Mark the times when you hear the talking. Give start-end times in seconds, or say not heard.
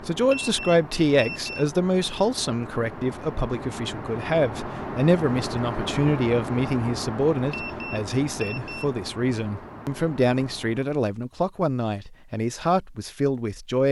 0.0-13.8.